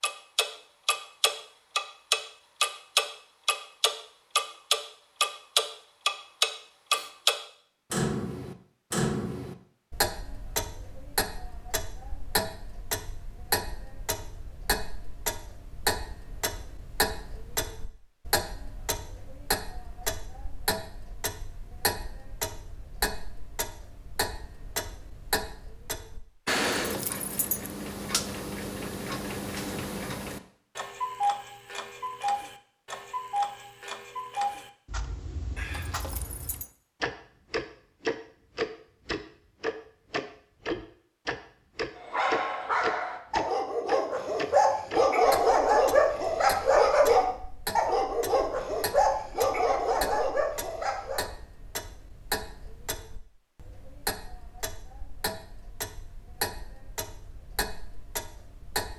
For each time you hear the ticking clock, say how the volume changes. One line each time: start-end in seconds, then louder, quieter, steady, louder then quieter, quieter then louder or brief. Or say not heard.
0.0-58.9 quieter.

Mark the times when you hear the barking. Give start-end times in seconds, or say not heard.
42.0-51.2.